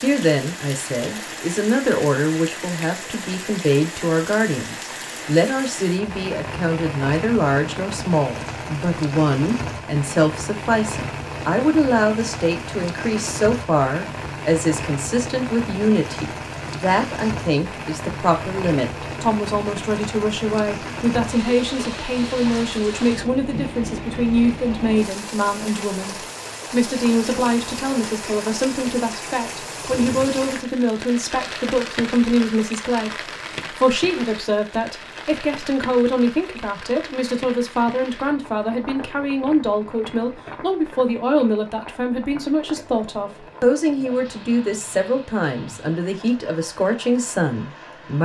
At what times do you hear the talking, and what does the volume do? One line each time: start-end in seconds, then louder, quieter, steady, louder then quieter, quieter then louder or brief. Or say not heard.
0.0-48.1 steady.